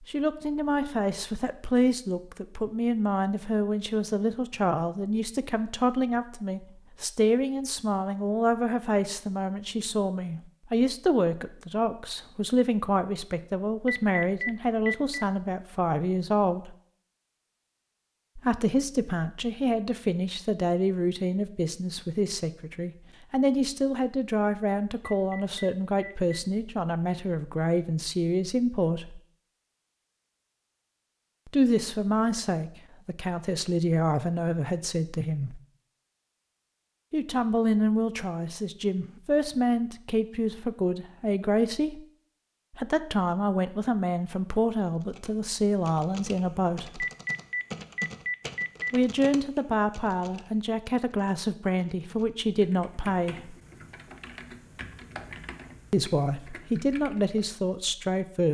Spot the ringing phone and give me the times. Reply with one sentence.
You can hear the ringing phone from 13.8 to 15.2 s, from 25.1 to 26.1 s and from 47.0 to 49.0 s.